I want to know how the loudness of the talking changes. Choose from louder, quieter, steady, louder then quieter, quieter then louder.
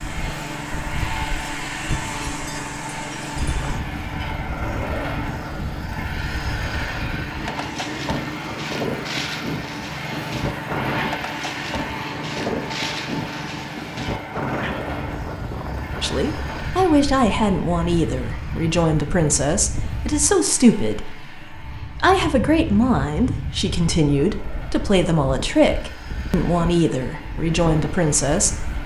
steady.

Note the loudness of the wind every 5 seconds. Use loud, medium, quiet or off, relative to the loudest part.
medium, loud, loud, medium, medium, medium.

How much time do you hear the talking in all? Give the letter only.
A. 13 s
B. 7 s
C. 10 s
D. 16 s
A.